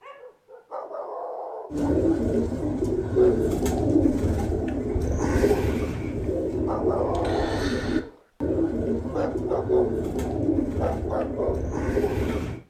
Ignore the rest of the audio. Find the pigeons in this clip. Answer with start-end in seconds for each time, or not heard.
1.7-12.6.